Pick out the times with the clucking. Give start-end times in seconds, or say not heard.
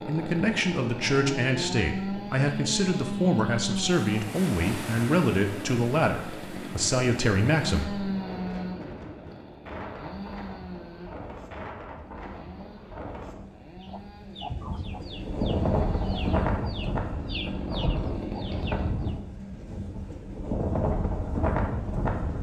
13.8-19.1.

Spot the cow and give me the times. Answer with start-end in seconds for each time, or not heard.
not heard.